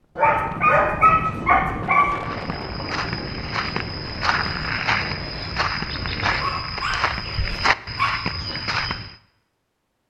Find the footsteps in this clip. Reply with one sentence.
You can hear the footsteps from 2.2 to 9.2 s.